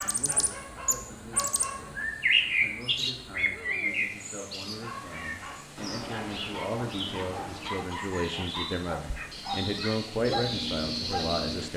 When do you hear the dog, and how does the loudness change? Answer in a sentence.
You can hear the dog briefly from 0.0 to 2.0 s; and from 4.7 to 11.7 s, getting louder.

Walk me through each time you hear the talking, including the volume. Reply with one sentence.
The talking can be heard from 0.0 to 11.7 s, getting louder.